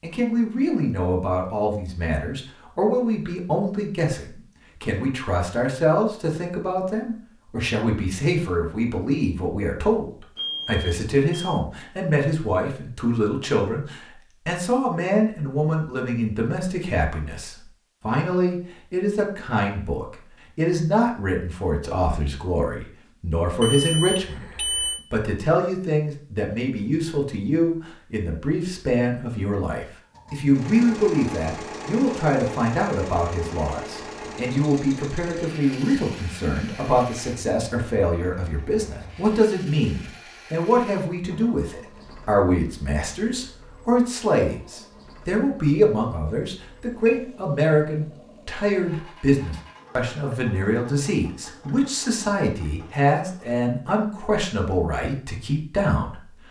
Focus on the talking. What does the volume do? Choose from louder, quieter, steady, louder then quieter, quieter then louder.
steady.